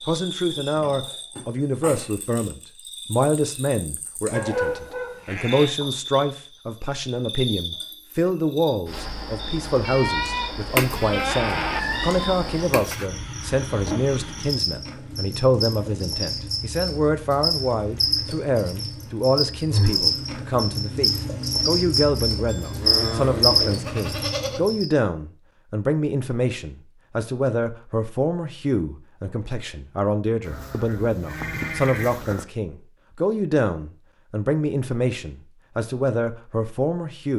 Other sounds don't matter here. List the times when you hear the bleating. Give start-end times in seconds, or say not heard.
4.3-5.8, 9.8-11.8, 22.4-24.7, 30.4-32.5.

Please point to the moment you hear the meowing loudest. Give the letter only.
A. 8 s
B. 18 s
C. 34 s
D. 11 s
D.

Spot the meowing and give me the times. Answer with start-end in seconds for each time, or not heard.
10.8-13.1.